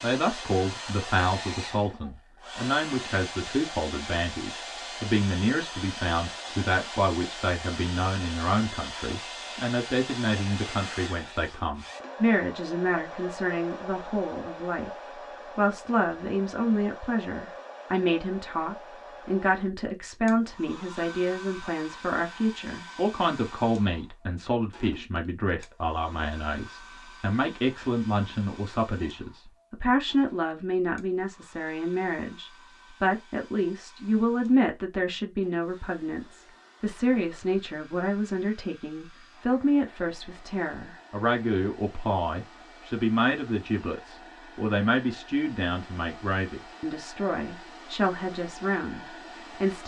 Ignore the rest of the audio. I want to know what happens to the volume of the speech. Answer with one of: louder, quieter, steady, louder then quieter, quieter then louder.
steady.